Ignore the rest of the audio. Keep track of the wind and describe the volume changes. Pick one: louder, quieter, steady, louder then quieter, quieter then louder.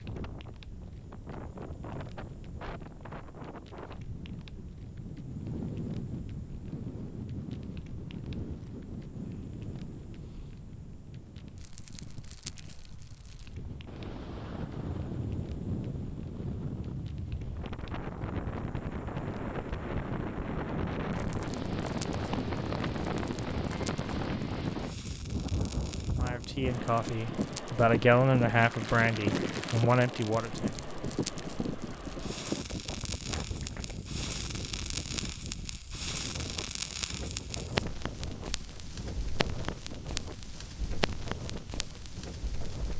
louder then quieter.